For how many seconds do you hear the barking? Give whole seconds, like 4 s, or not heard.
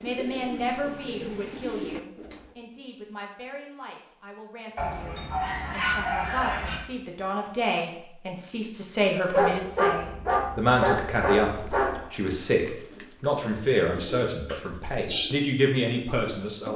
5 s.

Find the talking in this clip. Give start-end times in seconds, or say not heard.
0.0-16.7.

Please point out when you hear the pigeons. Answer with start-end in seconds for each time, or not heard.
0.0-2.6, 11.4-16.7.